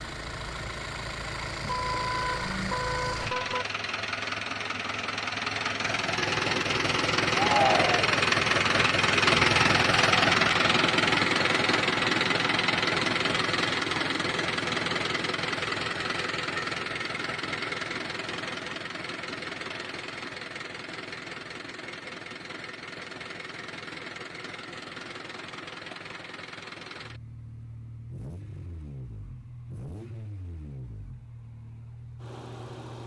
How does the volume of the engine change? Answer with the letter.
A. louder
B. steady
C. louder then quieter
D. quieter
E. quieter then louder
C.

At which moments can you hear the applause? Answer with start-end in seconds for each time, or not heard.
not heard.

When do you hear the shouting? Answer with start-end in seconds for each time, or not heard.
7.3-8.2.